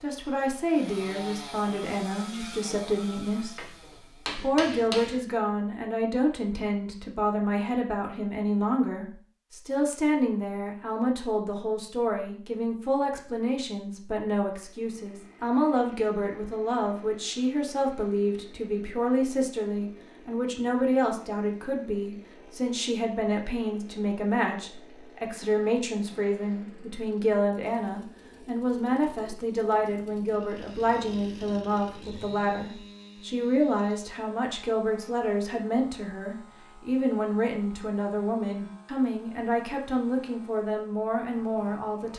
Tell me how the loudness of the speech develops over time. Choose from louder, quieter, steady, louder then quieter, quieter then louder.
steady.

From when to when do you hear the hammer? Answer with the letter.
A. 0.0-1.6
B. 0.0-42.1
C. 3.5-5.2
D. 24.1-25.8
C.